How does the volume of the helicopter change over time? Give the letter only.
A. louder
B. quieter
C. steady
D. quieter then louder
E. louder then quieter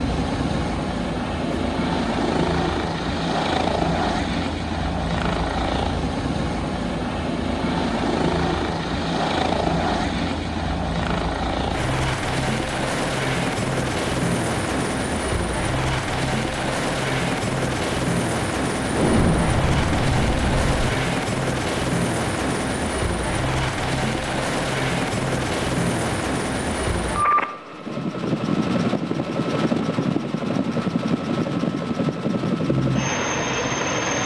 C.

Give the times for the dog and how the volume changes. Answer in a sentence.
The dog can't be heard in this clip.